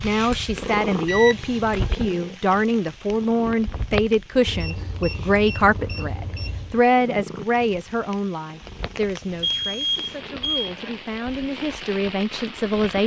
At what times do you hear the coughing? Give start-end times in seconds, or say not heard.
not heard.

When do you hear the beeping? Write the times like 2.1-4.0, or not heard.
1.1-1.9, 4.5-6.8, 9.4-10.7.